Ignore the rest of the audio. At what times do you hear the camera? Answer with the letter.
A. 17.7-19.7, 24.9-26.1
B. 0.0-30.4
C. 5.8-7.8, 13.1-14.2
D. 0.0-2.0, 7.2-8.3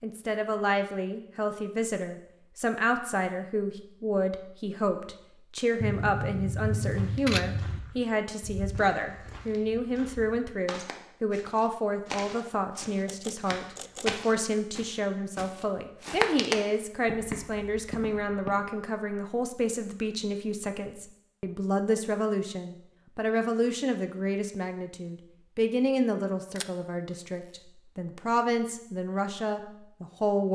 C.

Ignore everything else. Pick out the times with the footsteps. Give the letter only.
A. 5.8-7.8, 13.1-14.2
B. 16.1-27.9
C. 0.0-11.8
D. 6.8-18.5
D.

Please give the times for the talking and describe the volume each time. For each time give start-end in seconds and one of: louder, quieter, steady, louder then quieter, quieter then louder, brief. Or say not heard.
0.0-30.4 steady.